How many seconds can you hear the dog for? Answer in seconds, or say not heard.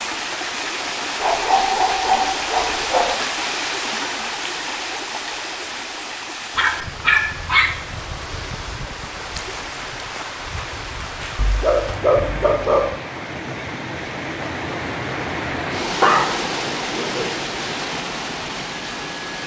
6 s.